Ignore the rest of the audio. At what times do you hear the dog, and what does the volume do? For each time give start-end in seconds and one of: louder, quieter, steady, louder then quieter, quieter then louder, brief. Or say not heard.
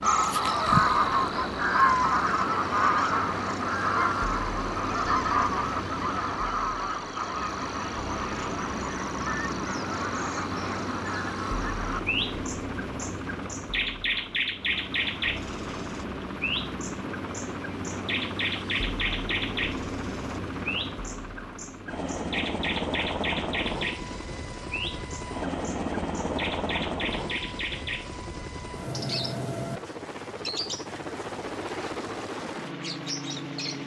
not heard.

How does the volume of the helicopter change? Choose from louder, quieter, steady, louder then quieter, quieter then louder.
steady.